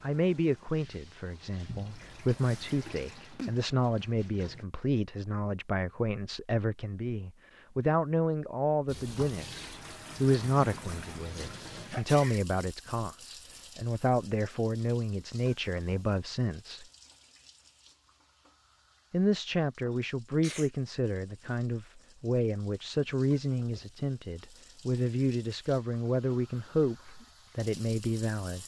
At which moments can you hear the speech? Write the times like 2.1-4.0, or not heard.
0.0-16.9, 19.1-28.6.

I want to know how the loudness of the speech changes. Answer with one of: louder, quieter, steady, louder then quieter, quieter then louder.
steady.